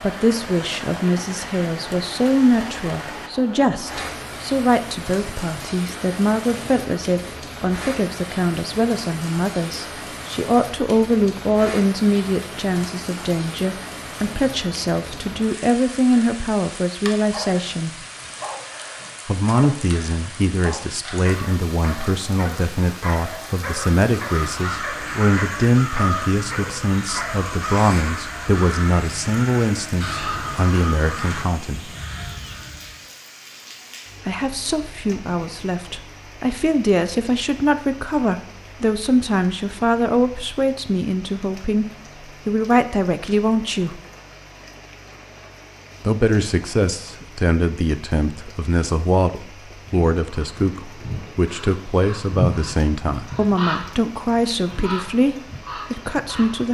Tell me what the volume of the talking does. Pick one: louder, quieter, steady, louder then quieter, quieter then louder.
steady.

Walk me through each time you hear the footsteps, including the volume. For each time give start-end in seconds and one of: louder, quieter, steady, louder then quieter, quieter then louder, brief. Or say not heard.
not heard.